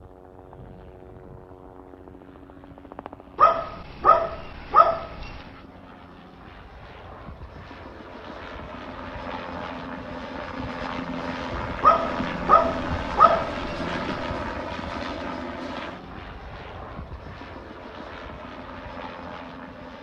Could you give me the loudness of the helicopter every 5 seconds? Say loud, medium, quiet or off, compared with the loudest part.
quiet, medium, loud, medium.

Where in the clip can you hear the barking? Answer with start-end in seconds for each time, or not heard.
3.4-5.4, 11.8-14.2.